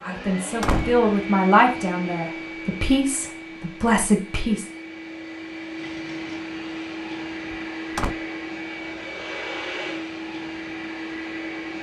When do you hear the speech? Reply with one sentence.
The speech can be heard from 0.0 to 4.7 s.